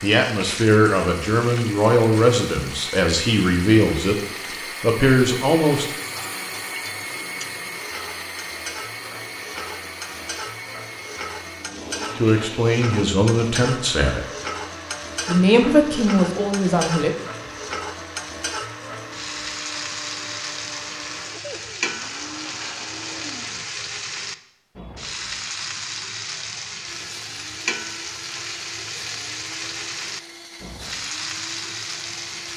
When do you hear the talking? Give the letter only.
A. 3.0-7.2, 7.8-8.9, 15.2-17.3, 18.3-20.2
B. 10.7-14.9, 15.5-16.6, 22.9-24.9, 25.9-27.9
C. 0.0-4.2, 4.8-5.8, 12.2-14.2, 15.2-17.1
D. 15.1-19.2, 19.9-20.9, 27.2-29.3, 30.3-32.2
C.